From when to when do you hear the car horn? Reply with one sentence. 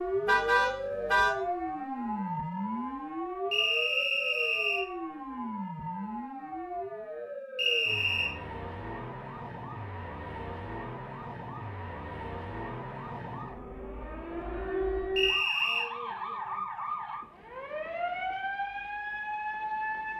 You can hear the car horn from 0.2 to 1.4 s.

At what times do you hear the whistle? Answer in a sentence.
The whistle can be heard from 3.5 to 4.8 s, from 7.5 to 8.3 s and from 15.2 to 15.9 s.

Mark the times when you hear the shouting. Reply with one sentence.
You can't hear the shouting here.